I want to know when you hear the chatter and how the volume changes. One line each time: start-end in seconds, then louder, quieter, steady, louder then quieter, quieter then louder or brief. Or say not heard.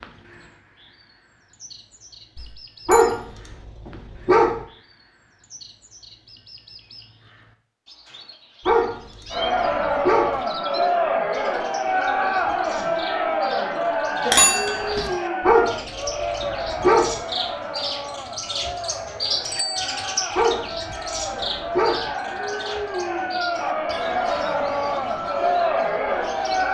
9.3-26.6 quieter then louder.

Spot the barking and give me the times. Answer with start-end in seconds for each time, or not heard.
2.9-4.6, 8.7-10.4, 15.4-17.1, 20.4-22.1.